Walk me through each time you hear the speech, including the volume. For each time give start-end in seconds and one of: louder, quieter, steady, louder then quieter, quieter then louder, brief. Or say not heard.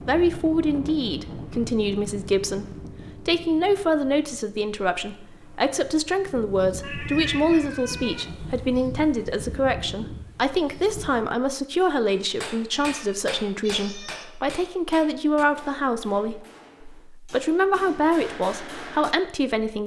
0.1-19.8 steady.